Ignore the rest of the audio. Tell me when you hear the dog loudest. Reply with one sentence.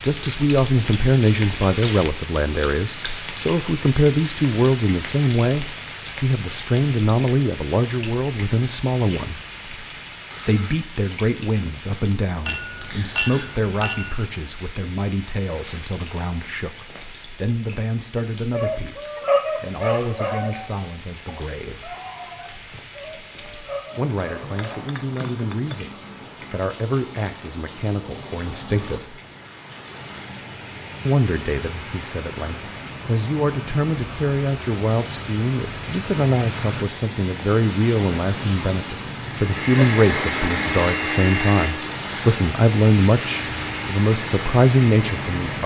The volume of the dog peaks at 19 seconds.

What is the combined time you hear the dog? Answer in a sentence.
The dog can be heard for 6 seconds in total.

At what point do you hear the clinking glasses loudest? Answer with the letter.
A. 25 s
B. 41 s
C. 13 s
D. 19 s
C.